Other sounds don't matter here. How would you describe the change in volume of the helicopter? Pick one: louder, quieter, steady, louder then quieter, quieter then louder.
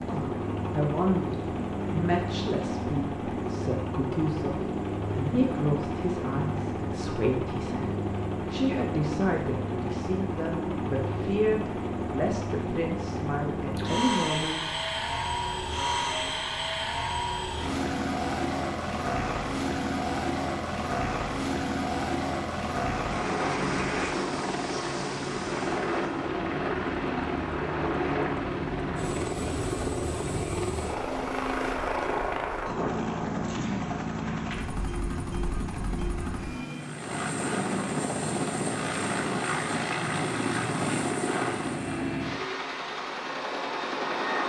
steady.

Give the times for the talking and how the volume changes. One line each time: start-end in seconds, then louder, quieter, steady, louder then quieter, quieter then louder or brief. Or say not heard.
0.1-14.7 steady.